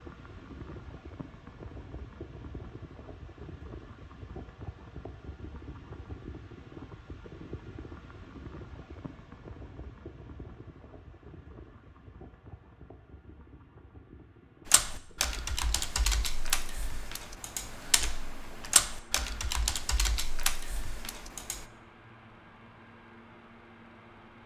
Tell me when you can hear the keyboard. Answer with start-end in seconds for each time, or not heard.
14.7-21.6.